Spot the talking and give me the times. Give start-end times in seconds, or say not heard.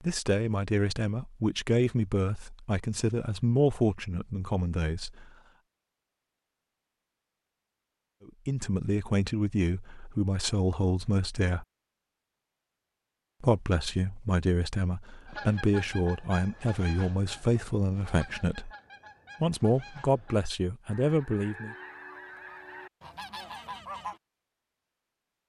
0.0-5.2, 8.2-11.7, 13.4-18.7, 19.4-21.8.